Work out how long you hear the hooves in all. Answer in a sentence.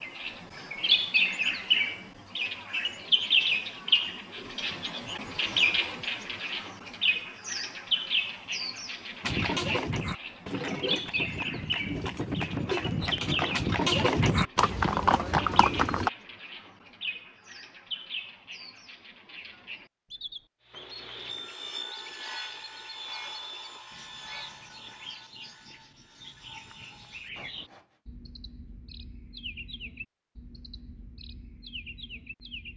You can hear the hooves for 7 seconds altogether.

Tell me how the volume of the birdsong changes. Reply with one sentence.
The volume of the birdsong goes down.